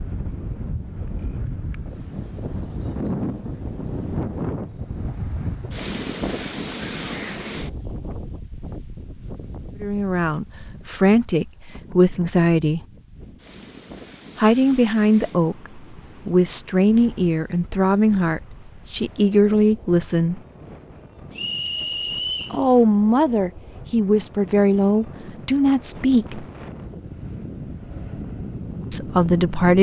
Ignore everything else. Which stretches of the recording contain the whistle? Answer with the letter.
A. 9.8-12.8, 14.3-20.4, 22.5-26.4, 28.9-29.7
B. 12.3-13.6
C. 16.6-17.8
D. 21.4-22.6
D.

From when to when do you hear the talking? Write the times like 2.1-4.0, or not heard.
9.8-12.8, 14.3-20.4, 22.5-26.4, 28.9-29.7.